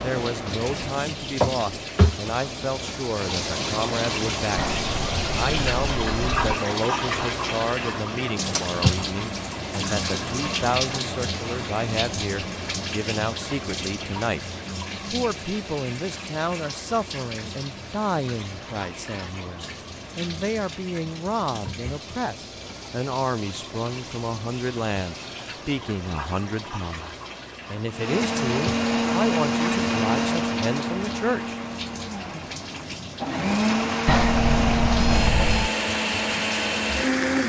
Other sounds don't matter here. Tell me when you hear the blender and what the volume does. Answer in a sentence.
The blender can be heard from 27.9 to 37.4 s, getting quieter then louder.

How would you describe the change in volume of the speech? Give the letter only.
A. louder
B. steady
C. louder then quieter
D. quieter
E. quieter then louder
B.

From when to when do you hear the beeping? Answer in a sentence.
The beeping can be heard from 4.5 to 6.6 s and from 34.0 to 35.7 s.